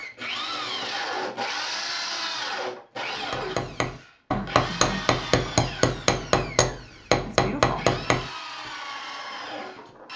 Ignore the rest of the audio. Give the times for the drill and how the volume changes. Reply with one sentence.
The drill can be heard from 0.0 to 10.1 s, getting quieter then louder.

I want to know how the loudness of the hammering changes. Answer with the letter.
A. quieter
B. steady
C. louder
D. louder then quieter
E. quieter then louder
C.